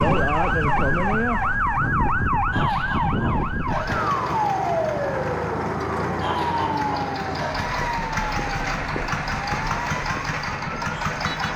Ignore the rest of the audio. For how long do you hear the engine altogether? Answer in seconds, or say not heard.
8 s.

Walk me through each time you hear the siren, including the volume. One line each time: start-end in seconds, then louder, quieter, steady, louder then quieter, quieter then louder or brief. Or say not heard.
0.0-11.5 quieter.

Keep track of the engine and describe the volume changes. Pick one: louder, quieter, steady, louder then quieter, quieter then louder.
louder.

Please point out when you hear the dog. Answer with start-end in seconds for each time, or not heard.
2.5-4.0, 6.2-7.7.